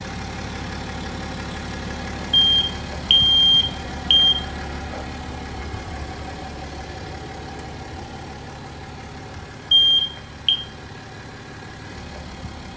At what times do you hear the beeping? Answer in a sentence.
You can hear the beeping from 2.3 to 4.3 s and from 9.7 to 10.6 s.